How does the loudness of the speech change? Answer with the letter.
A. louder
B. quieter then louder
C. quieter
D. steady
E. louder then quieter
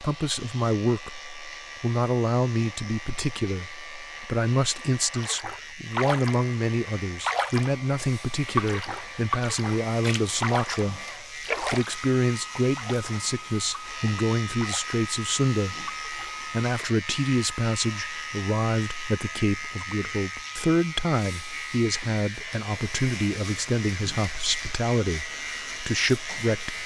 D.